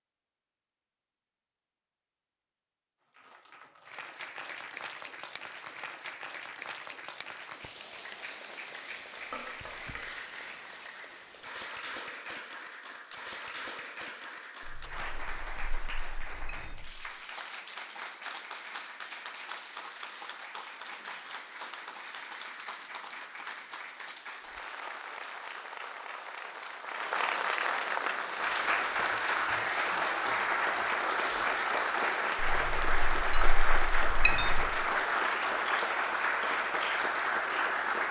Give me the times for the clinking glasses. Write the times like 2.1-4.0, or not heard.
9.2-10.1, 14.6-16.9, 32.4-34.7.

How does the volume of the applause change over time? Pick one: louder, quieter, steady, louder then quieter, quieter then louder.
louder.